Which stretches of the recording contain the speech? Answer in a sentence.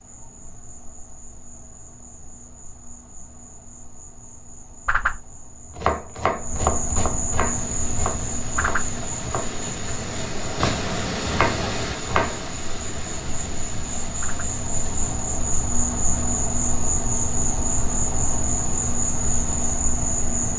The speech can't be heard in this clip.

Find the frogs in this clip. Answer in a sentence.
You can't hear the frogs here.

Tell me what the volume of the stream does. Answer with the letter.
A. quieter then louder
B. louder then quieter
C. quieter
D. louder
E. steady
B.